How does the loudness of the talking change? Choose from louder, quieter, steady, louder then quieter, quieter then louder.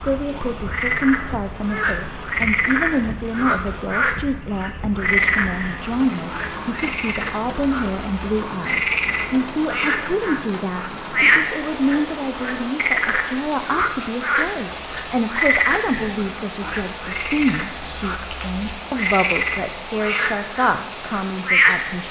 steady.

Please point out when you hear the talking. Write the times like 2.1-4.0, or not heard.
0.0-22.0.